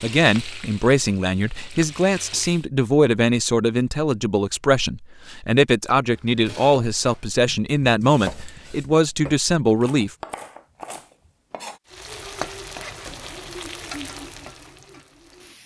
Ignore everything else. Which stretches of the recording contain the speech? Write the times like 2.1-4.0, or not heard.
0.0-10.1.